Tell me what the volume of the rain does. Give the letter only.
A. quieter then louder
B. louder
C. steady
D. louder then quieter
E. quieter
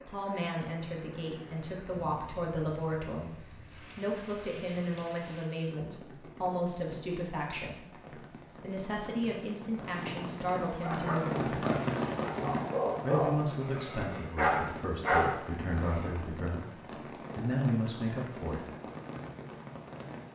D.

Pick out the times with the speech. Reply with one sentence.
You can hear the speech from 0.1 to 11.6 s and from 13.0 to 18.6 s.